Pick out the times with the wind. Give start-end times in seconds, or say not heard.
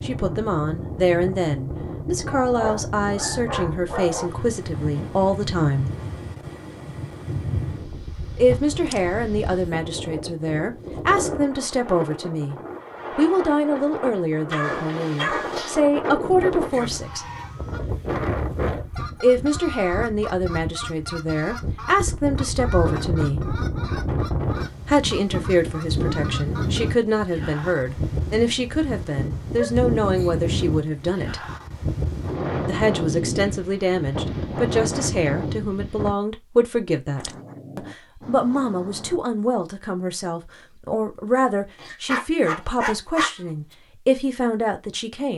0.0-36.1.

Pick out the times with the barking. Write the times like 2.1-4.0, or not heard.
2.2-4.3, 14.5-15.8, 29.6-30.3, 41.8-43.4.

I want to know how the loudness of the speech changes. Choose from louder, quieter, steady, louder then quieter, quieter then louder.
steady.